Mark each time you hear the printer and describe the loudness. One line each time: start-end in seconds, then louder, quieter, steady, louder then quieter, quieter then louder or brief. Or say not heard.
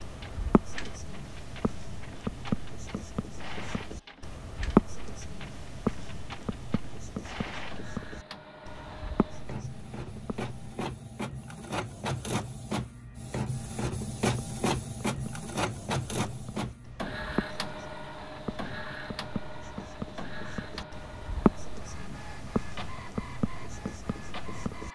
0.0-24.8 louder then quieter.